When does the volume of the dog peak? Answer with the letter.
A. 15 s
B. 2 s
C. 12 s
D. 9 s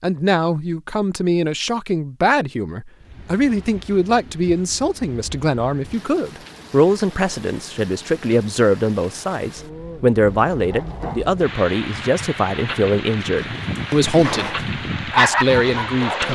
A.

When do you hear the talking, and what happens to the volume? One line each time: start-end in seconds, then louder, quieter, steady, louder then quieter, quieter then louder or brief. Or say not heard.
0.0-16.3 steady.